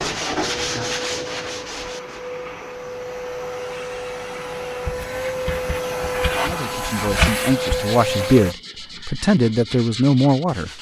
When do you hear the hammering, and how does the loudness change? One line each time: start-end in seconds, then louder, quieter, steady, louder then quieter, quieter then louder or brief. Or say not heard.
not heard.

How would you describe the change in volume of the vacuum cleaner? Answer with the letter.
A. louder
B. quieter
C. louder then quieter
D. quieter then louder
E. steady
A.